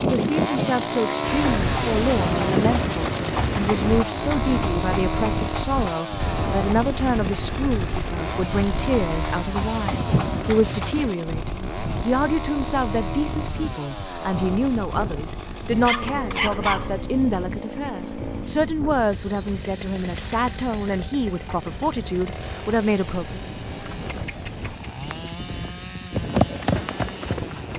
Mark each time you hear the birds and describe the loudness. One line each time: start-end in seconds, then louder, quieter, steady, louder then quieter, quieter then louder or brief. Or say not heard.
not heard.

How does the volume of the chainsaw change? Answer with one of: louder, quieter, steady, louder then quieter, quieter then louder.
quieter.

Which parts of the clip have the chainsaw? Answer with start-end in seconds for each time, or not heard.
0.0-27.7.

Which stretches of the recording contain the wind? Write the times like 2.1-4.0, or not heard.
0.0-27.7.